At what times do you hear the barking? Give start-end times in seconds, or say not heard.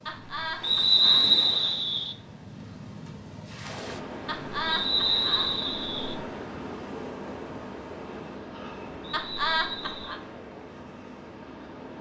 not heard.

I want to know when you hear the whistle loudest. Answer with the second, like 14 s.
1 s.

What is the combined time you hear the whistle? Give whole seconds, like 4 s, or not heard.
4 s.